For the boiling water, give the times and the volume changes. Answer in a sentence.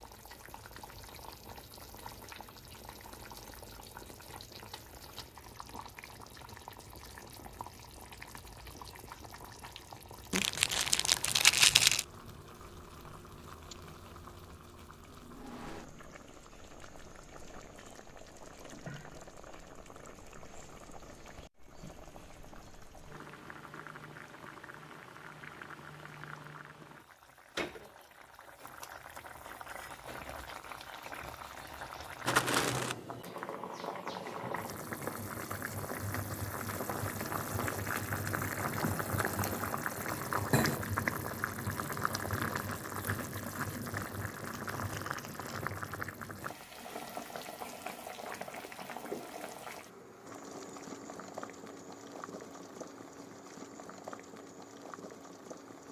You can hear the boiling water from 0.0 to 55.8 s, getting louder then quieter.